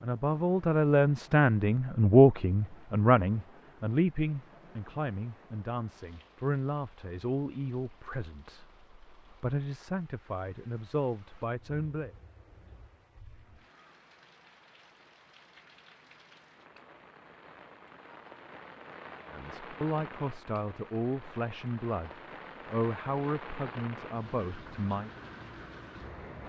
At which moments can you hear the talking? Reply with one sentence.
You can hear the talking from 0.0 to 12.1 s and from 19.3 to 25.1 s.